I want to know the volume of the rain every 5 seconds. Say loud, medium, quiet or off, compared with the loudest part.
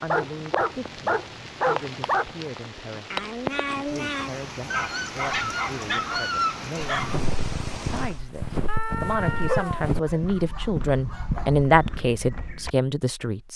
loud, loud, off.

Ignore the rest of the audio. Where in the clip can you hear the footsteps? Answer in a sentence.
You can hear the footsteps from 7.0 to 12.7 s.